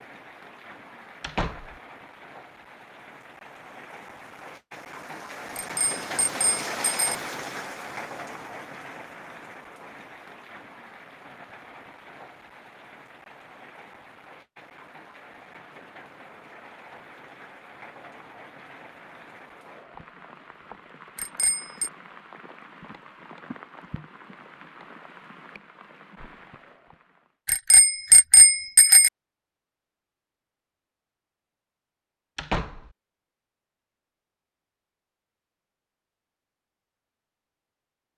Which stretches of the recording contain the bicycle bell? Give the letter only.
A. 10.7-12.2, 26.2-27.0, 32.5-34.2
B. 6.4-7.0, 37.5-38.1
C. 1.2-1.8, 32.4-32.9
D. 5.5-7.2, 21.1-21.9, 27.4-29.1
D.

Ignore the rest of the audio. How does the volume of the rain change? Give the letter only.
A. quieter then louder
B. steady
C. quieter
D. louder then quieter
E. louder
D.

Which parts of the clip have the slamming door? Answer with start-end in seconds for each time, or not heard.
1.2-1.8, 32.4-32.9.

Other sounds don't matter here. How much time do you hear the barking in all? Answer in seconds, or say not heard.
not heard.